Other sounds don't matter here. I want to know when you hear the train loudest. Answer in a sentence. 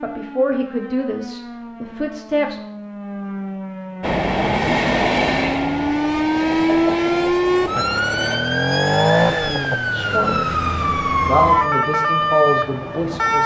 The volume of the train peaks at 5 seconds.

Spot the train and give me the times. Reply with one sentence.
You can hear the train from 4.0 to 8.4 s.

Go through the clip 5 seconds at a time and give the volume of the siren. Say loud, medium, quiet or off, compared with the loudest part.
quiet, loud, loud.